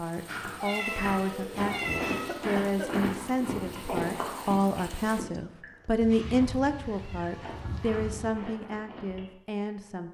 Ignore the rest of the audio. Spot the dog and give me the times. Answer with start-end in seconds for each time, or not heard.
not heard.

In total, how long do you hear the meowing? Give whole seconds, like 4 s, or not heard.
4 s.